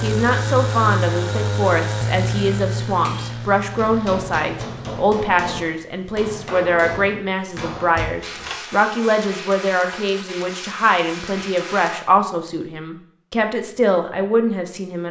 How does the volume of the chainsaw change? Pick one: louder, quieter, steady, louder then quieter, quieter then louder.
quieter.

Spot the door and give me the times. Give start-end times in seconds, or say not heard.
8.0-8.7.